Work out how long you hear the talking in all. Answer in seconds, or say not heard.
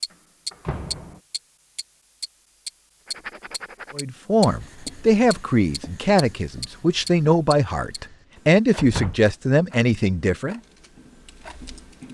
7 s.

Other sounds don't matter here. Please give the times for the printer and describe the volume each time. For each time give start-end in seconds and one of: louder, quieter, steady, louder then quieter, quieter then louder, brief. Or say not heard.
not heard.